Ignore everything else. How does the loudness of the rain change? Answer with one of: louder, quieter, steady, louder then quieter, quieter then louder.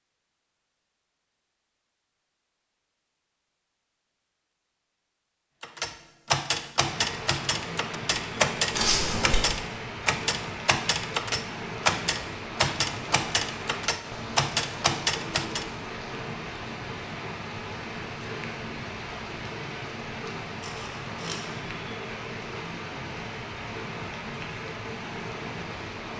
steady.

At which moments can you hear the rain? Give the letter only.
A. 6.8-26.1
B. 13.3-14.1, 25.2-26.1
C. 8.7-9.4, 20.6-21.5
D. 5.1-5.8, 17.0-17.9
A.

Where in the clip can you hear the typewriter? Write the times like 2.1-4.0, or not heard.
5.6-15.7.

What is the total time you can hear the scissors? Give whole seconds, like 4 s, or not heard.
2 s.